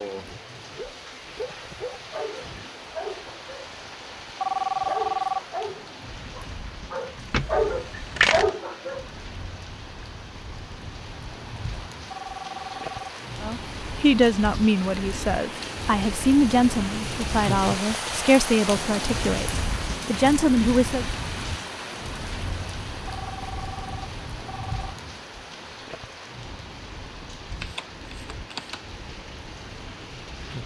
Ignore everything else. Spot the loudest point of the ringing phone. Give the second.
5 s.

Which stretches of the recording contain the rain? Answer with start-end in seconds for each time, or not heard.
0.0-30.6.